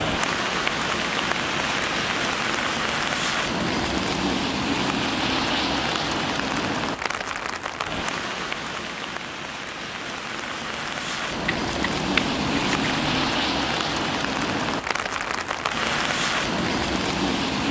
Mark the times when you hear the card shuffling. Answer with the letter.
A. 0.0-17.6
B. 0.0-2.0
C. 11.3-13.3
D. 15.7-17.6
C.